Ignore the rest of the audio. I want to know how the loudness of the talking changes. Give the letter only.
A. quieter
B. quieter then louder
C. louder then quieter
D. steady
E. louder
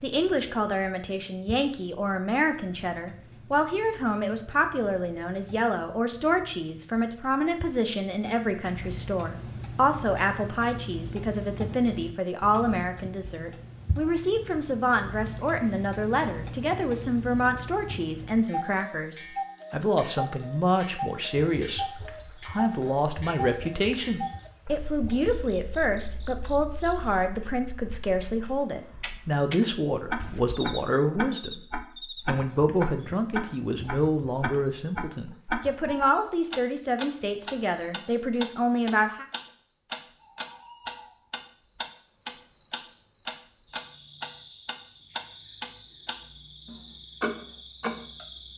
D.